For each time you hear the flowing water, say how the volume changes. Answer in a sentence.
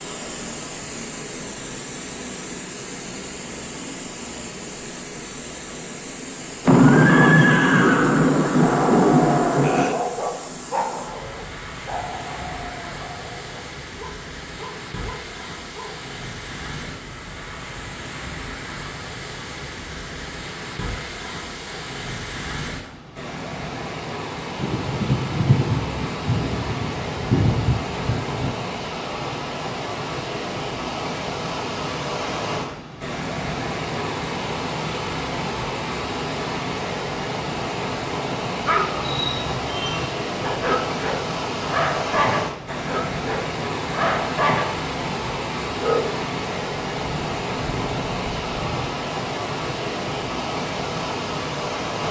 The flowing water can be heard from 0.0 to 52.0 s, getting louder.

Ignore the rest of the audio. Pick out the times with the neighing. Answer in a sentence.
The neighing can be heard from 6.8 to 8.2 s.